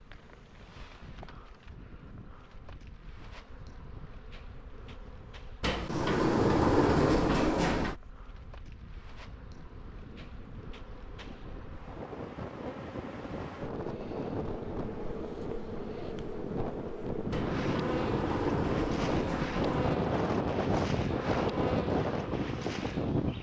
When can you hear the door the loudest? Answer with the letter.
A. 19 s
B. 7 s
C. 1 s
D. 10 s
B.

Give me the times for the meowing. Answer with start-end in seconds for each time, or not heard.
not heard.